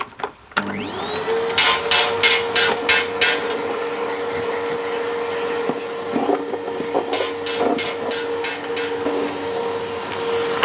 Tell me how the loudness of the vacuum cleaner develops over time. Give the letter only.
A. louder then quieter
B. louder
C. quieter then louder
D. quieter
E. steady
E.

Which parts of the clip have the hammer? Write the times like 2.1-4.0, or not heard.
1.6-3.5, 7.1-9.1.